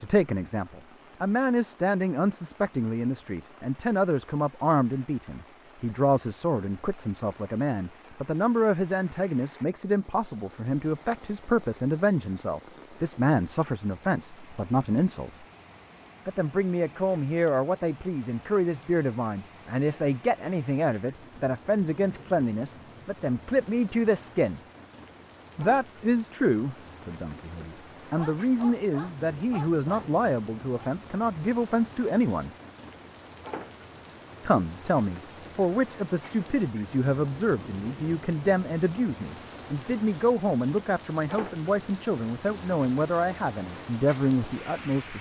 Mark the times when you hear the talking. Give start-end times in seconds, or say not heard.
0.0-15.4, 16.2-24.6, 25.6-32.5, 34.5-45.1.